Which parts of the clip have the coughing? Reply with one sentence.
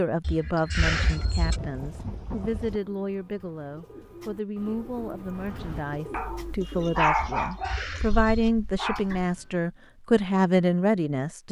You can hear the coughing from 0.2 to 1.6 s and from 7.4 to 8.5 s.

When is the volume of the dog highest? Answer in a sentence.
The volume of the dog peaks at 7 seconds.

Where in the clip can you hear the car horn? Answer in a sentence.
You can't hear the car horn here.